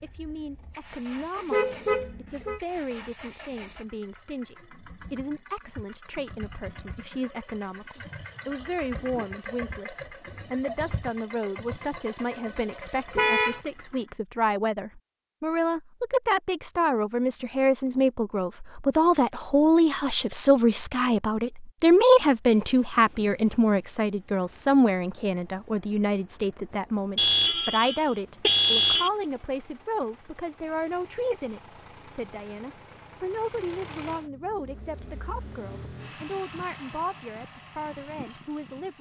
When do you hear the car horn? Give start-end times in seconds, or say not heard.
1.5-2.6, 13.2-13.6, 27.1-29.1.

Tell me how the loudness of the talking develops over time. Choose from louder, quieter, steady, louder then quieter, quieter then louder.
louder then quieter.